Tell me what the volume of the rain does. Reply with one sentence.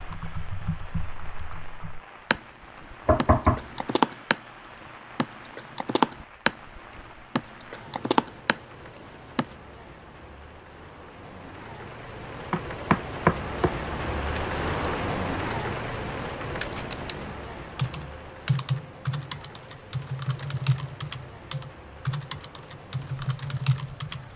The volume of the rain goes up, then down.